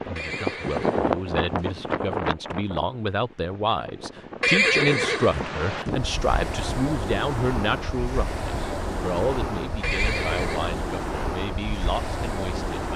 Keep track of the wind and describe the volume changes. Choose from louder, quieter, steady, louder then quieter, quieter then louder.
quieter then louder.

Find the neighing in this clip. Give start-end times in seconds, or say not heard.
0.1-1.7, 4.4-5.5, 9.8-10.8.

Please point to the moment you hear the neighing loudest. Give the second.
5 s.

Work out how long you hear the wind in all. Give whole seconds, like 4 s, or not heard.
13 s.